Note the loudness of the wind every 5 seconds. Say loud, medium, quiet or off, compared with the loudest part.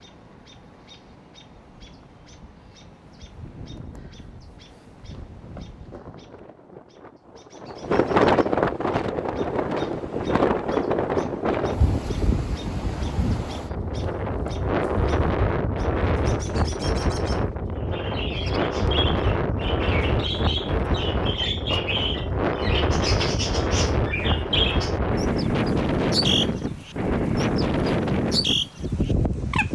quiet, loud, loud, loud, loud, loud.